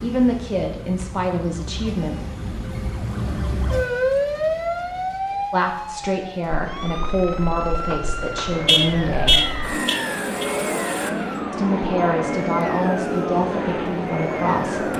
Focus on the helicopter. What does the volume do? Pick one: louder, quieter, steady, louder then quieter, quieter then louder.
louder.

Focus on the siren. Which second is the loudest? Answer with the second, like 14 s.
4 s.